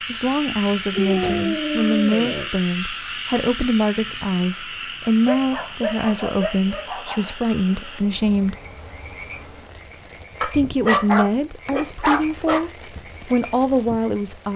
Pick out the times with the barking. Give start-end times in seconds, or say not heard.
0.9-2.5, 5.0-7.3, 10.4-12.7.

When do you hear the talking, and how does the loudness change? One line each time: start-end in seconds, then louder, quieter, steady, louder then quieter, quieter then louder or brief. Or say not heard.
0.1-8.6 steady
10.4-14.5 quieter then louder.